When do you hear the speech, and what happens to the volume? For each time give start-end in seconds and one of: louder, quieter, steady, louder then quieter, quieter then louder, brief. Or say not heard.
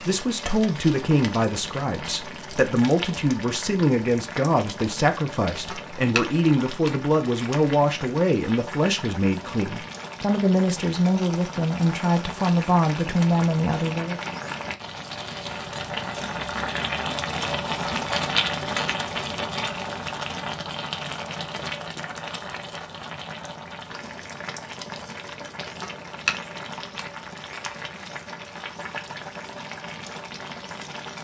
0.0-14.2 steady.